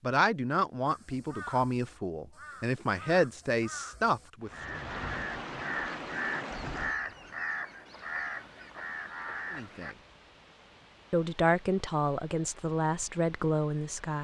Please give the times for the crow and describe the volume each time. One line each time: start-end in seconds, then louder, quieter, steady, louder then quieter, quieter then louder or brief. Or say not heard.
0.8-9.9 louder.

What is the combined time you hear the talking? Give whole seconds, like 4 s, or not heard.
8 s.